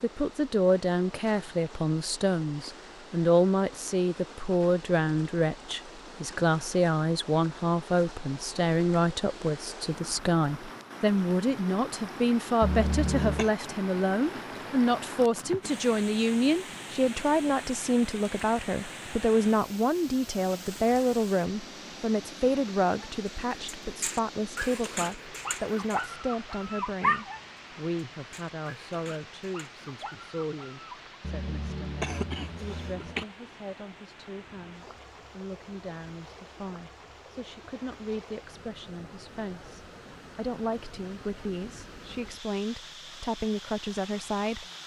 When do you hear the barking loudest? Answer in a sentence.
The volume of the barking peaks at 27 seconds.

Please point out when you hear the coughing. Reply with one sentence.
You can hear the coughing from 12.6 to 13.5 s and from 31.2 to 33.2 s.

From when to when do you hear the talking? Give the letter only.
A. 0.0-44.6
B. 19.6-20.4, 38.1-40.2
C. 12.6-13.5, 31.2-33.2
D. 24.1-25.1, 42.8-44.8
A.